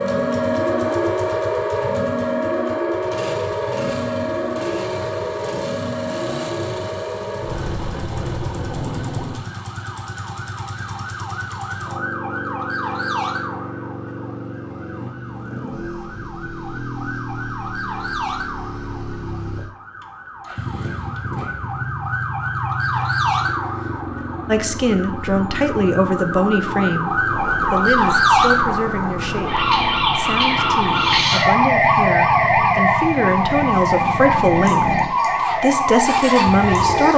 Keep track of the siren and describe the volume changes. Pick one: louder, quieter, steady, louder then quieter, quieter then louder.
quieter then louder.